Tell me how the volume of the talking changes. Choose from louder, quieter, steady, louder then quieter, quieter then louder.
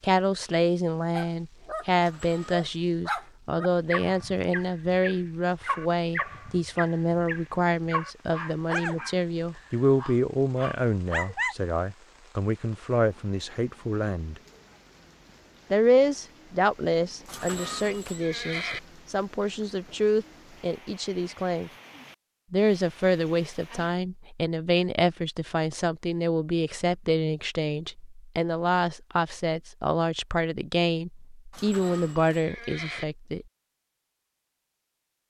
steady.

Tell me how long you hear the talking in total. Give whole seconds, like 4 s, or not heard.
31 s.